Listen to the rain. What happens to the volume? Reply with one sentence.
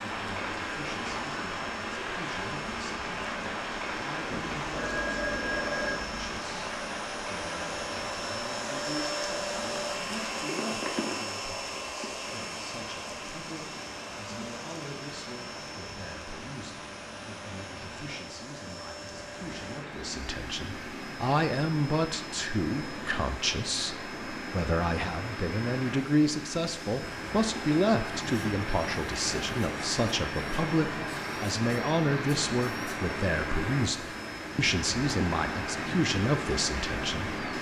The loudness of the rain goes down, then up.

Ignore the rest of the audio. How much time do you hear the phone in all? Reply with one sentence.
The phone can be heard for 2 seconds in total.